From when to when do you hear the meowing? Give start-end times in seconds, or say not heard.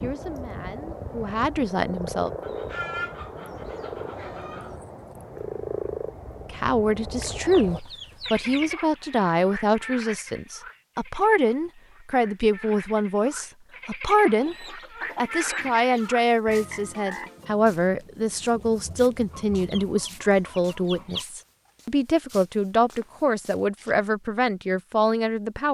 not heard.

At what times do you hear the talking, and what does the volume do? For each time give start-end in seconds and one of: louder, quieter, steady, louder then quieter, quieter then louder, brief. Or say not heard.
0.0-2.3 brief
6.5-25.6 steady.